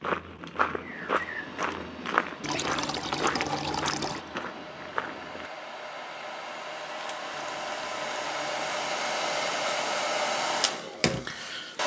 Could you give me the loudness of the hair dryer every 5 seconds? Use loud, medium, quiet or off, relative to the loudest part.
quiet, loud, loud.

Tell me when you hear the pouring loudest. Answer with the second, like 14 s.
3 s.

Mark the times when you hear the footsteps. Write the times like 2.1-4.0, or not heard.
0.0-5.5.